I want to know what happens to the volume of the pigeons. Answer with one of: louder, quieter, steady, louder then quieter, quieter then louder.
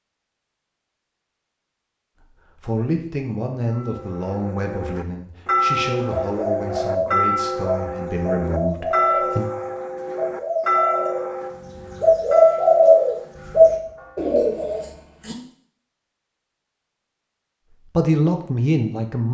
louder.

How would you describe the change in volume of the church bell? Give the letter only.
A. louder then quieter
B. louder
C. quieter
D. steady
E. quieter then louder
C.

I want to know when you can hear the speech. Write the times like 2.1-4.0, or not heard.
2.2-9.5, 17.9-19.3.